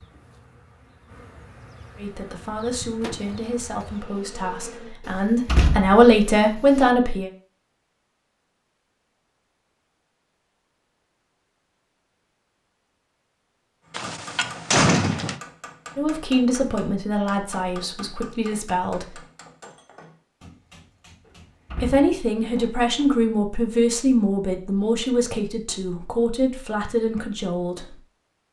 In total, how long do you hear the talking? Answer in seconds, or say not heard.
15 s.